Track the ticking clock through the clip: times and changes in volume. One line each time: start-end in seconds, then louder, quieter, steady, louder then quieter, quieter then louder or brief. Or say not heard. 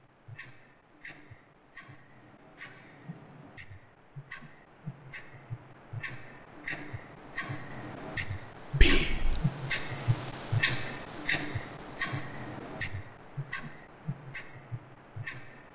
0.0-15.7 louder then quieter.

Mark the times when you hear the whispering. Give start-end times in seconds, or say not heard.
8.8-9.4.